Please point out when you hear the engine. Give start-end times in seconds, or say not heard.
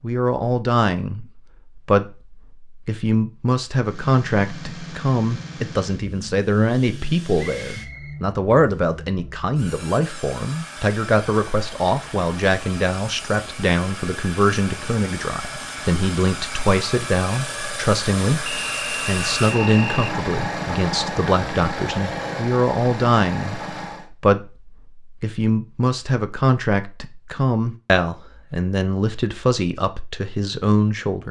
3.8-24.1.